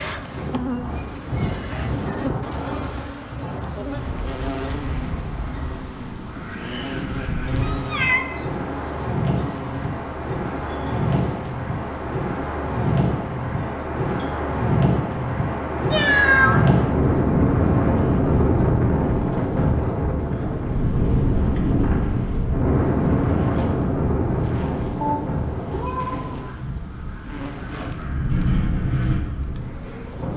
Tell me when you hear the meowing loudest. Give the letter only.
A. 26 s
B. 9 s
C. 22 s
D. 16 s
D.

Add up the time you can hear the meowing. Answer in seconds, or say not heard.
3 s.